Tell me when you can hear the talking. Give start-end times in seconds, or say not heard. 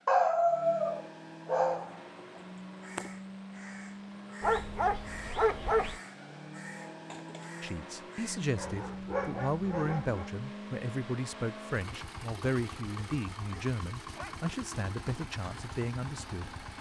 7.6-16.5.